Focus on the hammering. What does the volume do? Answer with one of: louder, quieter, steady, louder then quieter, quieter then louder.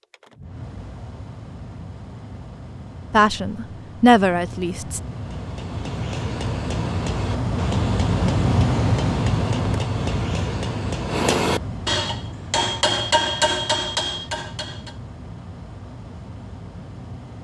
louder.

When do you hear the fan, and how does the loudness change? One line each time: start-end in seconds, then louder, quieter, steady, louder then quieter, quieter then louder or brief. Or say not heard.
0.0-17.3 louder then quieter.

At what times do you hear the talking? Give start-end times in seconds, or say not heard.
3.1-5.0.